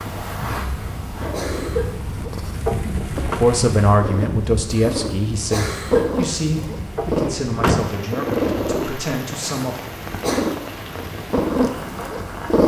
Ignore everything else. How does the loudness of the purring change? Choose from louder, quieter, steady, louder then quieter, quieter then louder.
louder.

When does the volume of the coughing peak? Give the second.
6 s.